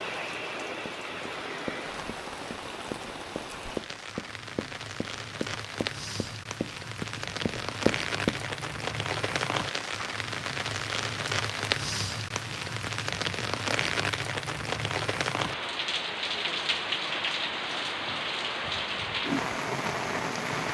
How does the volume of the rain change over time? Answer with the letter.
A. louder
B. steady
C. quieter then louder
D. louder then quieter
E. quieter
A.